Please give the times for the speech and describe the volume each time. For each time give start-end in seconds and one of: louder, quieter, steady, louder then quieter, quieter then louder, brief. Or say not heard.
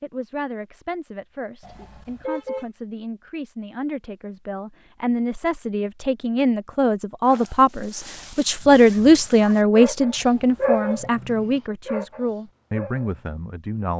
0.0-13.9 louder then quieter.